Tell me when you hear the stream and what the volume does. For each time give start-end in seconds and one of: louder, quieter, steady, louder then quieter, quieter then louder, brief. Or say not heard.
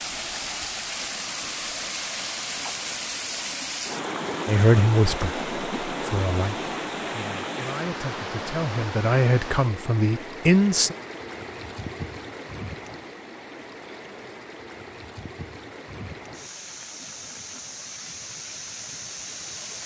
0.0-19.8 quieter.